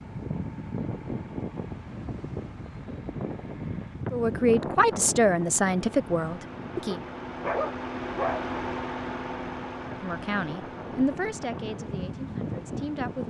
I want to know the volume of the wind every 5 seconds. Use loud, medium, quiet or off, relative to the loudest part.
loud, medium, loud.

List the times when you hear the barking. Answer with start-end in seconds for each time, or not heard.
6.9-8.4.